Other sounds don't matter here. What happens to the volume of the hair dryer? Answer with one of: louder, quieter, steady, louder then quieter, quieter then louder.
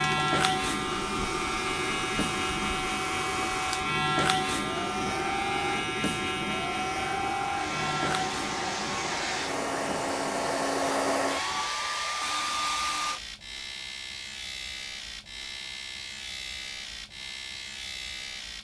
louder.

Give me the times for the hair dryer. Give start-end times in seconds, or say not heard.
0.0-13.2.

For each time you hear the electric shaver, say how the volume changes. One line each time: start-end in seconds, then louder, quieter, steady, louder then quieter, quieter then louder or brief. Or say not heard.
0.0-18.5 quieter.